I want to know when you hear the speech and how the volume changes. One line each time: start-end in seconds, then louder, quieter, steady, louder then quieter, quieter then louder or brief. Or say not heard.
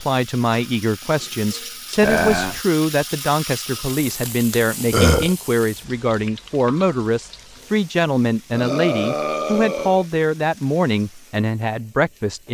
0.0-12.4 steady.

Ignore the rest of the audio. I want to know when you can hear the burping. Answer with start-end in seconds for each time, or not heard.
2.0-2.6, 4.9-5.3, 8.5-10.1.